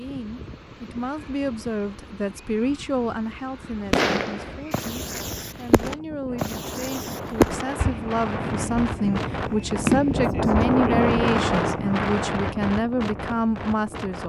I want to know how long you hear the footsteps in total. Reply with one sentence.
The footsteps can't be heard in this clip.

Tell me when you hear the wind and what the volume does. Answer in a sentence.
You can hear the wind from 0.0 to 14.2 s, getting louder.